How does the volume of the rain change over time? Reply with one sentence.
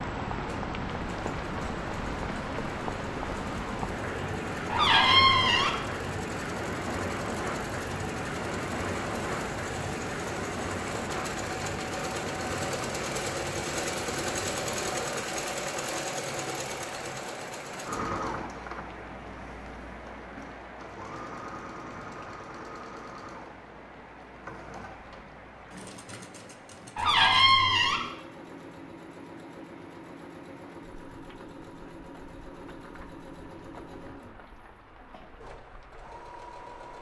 The volume of the rain goes down.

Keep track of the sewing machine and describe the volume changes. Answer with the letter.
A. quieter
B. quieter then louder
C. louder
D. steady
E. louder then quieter
E.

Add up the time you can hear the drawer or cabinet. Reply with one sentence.
The drawer or cabinet can be heard for 2 seconds in total.